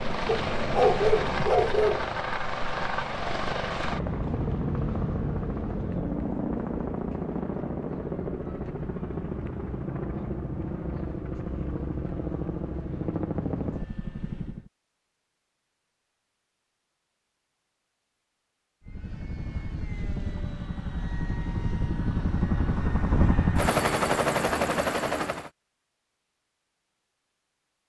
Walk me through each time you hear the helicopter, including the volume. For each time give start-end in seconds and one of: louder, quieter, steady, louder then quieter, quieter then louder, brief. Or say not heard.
0.0-14.7 steady
18.8-25.5 louder.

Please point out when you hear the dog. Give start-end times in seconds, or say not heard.
0.2-2.0.